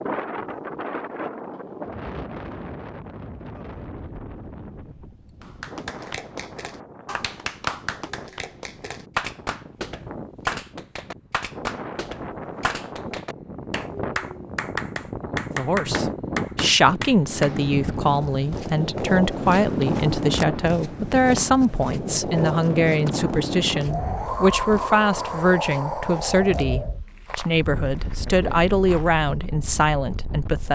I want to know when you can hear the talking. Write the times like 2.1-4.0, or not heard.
15.6-30.6.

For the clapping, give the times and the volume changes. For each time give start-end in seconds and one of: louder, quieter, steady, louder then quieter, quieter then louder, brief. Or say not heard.
5.4-17.6 steady.